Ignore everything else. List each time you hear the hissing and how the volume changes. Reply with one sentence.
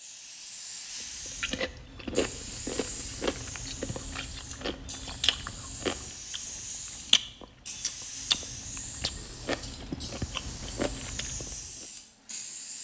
The hissing can be heard from 0.0 to 12.7 s, at a steady volume.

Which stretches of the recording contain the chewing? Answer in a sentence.
The chewing can be heard from 1.1 to 11.8 s.